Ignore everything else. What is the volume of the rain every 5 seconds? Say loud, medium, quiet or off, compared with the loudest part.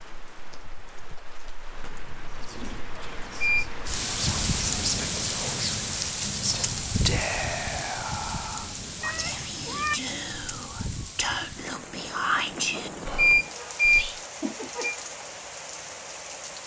loud, loud, medium, medium.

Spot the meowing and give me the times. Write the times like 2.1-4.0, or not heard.
9.0-10.0.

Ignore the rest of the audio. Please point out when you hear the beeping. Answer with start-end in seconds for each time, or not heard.
3.0-3.6, 12.8-14.9.